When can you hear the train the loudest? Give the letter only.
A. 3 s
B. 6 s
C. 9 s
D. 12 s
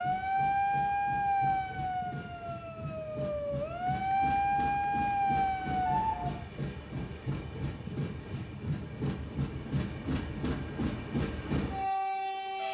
D.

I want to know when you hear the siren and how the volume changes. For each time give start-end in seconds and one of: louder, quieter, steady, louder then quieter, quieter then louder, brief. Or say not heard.
0.0-6.5 quieter then louder.